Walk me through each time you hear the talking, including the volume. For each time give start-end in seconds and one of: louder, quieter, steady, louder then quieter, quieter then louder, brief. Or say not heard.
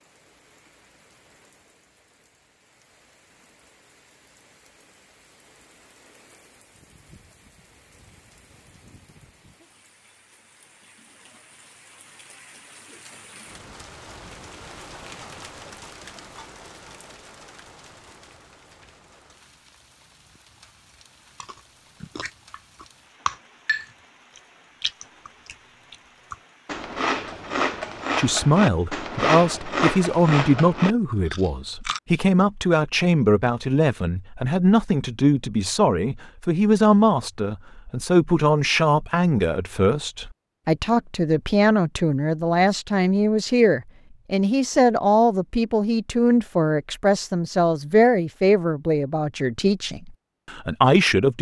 28.1-51.3 steady.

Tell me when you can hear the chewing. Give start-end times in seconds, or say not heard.
21.4-32.0.